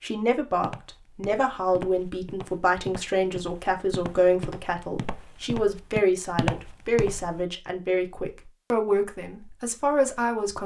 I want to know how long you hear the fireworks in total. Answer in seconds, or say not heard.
not heard.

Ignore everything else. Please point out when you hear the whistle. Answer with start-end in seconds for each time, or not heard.
not heard.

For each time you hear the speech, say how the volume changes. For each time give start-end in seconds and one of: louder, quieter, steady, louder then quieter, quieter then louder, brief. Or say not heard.
0.0-10.6 steady.